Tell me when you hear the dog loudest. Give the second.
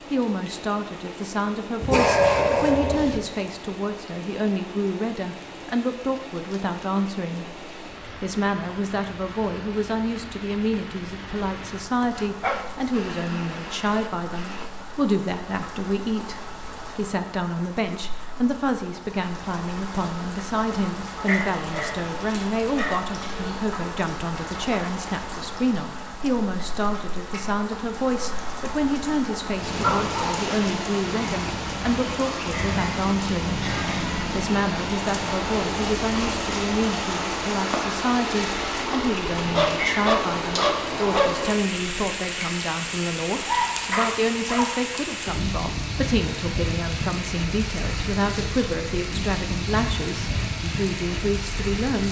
2 s.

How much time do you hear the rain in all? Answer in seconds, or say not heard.
52 s.